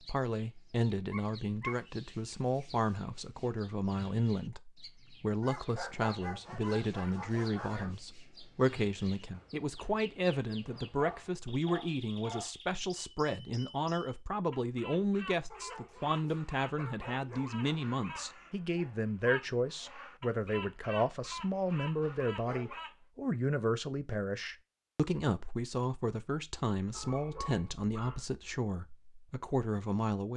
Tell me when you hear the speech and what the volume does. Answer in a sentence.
You can hear the speech from 0.1 to 30.3 s, at a steady volume.